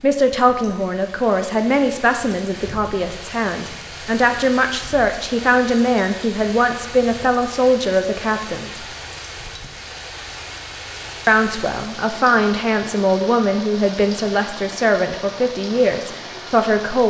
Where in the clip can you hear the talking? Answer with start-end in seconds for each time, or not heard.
0.0-8.8, 11.2-17.0.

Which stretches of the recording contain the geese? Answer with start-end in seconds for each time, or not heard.
not heard.